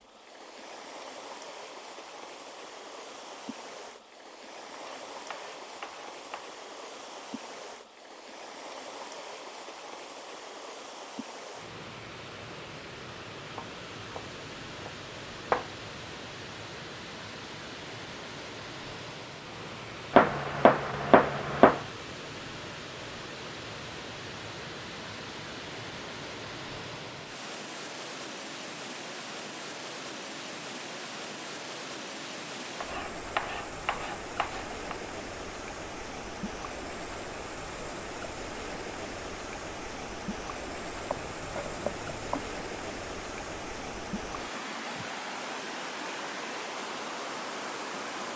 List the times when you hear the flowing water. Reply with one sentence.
The flowing water can be heard from 0.0 to 48.3 s.